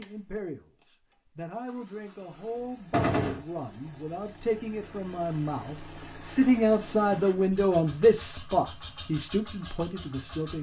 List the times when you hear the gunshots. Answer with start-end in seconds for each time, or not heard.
2.9-3.5.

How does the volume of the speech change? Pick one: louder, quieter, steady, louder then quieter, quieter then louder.
louder then quieter.